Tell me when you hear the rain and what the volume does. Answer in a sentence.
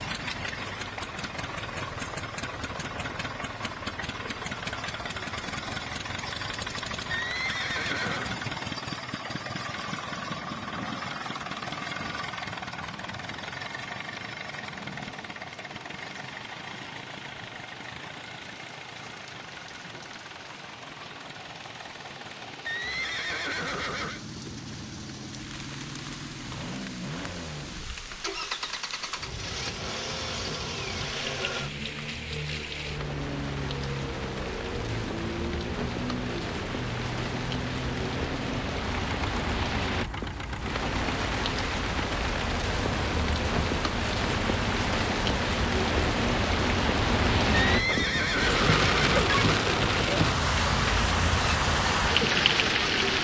You can hear the rain from 0.0 to 53.1 s, getting louder.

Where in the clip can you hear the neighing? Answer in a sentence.
You can hear the neighing from 7.1 to 8.4 s, from 22.6 to 24.2 s and from 47.5 to 49.5 s.